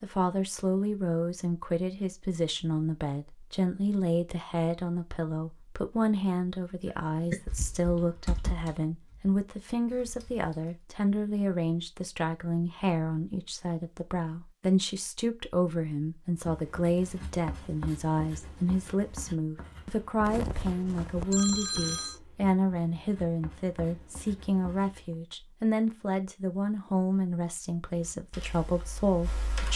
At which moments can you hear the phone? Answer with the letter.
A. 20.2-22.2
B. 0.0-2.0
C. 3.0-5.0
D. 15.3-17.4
A.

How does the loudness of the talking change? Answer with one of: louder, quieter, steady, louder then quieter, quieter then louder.
steady.